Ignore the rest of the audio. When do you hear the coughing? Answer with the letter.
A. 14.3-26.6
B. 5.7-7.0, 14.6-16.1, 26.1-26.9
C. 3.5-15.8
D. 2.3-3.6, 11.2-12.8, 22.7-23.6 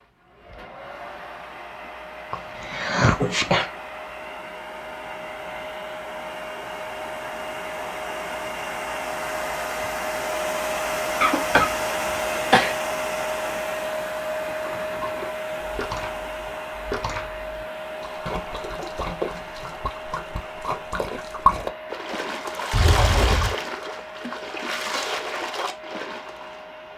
D.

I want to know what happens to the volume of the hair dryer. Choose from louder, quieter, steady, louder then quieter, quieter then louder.
louder then quieter.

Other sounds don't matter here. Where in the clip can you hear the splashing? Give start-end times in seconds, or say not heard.
14.3-26.6.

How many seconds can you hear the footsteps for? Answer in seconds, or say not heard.
not heard.